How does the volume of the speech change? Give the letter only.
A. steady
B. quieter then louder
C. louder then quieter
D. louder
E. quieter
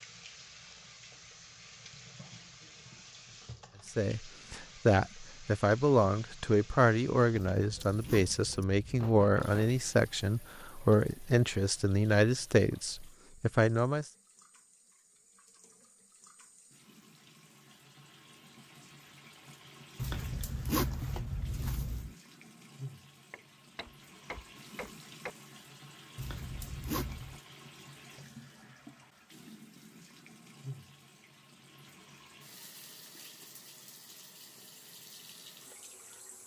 A.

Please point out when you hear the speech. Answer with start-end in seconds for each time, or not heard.
3.9-14.1.